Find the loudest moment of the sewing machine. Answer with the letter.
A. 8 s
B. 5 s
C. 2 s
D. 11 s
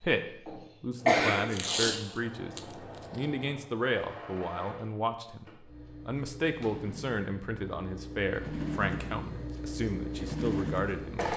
D.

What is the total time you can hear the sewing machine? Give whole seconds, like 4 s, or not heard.
11 s.